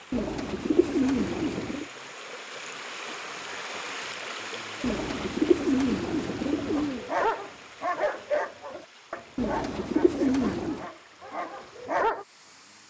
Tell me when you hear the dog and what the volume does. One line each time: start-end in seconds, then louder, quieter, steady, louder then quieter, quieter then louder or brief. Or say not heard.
6.8-12.2 quieter.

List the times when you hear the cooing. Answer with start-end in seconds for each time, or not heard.
0.1-1.9, 4.8-7.0, 9.3-10.8.